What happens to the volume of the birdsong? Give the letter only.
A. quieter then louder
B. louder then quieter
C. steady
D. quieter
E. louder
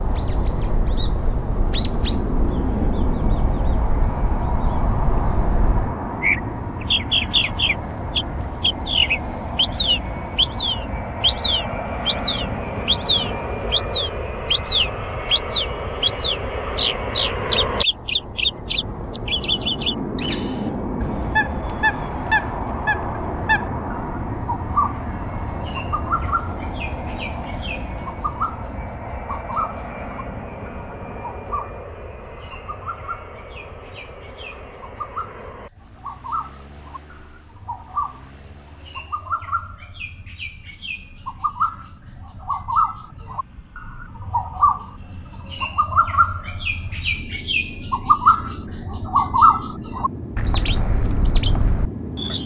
A.